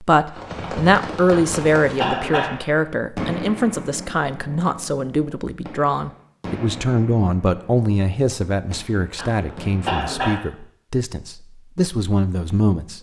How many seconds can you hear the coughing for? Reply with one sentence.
You can hear the coughing for 3 seconds altogether.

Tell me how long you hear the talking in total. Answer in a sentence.
You can hear the talking for 13 seconds altogether.